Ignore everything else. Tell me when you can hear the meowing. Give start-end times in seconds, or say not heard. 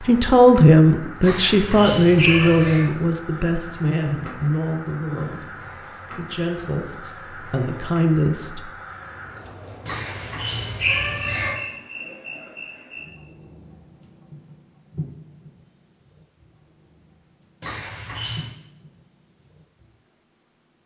1.2-2.9, 9.8-11.6, 17.6-18.5.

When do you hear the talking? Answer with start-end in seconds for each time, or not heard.
0.0-8.6.